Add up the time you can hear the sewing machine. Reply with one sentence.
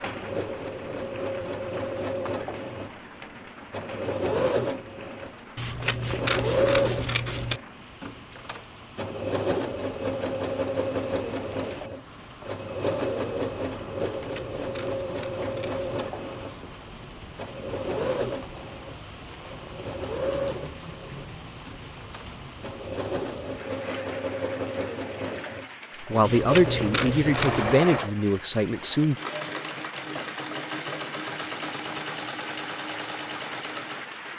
You can hear the sewing machine for 34 seconds altogether.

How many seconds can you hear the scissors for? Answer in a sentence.
You can hear the scissors for 5 seconds altogether.